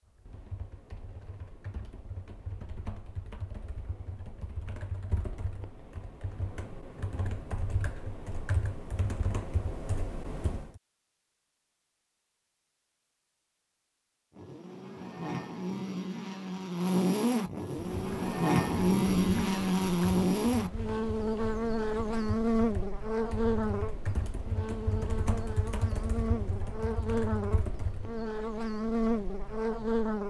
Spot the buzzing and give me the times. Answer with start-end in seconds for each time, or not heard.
14.3-30.2.